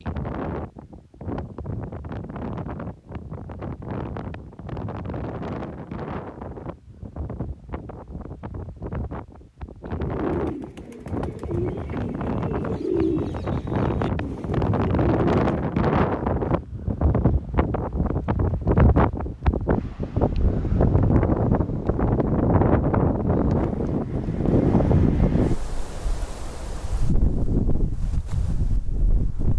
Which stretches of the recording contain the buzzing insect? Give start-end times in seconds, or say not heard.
not heard.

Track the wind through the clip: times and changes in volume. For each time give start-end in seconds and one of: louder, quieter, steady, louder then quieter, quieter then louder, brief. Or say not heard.
0.0-29.5 louder.